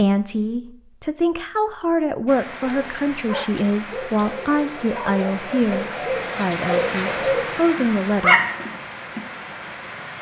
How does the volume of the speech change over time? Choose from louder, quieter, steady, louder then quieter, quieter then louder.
steady.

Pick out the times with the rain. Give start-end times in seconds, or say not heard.
2.2-10.1.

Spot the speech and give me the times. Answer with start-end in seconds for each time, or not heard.
0.0-8.4.